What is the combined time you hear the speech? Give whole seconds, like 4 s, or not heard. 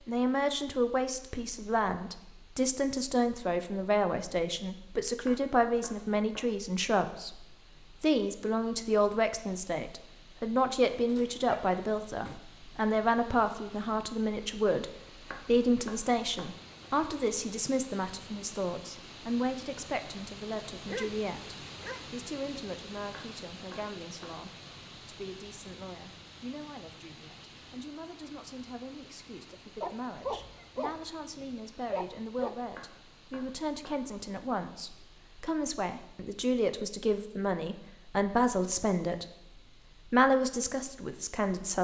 41 s.